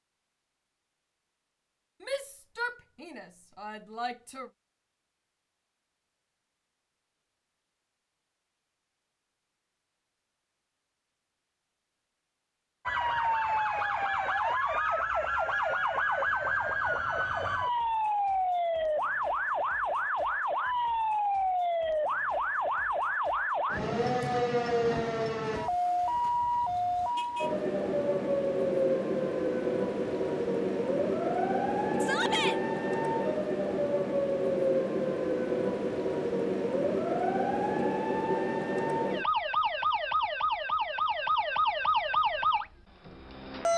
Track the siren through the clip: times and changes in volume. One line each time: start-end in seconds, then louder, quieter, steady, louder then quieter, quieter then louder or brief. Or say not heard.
12.8-43.7 steady.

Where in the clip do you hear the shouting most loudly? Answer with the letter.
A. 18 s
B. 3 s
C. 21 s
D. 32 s
D.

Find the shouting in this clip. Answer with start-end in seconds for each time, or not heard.
2.0-4.5, 32.0-32.6.